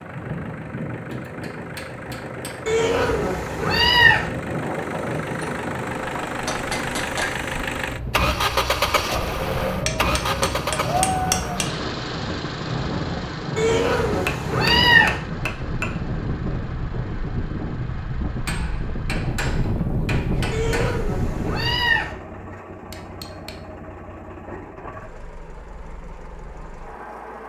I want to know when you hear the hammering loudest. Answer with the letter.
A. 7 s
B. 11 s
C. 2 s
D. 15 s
B.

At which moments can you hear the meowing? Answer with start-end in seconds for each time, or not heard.
2.6-4.3, 13.6-15.2, 20.5-22.1.